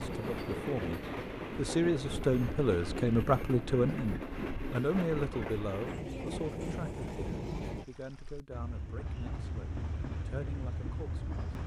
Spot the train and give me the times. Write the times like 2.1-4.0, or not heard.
0.0-11.6.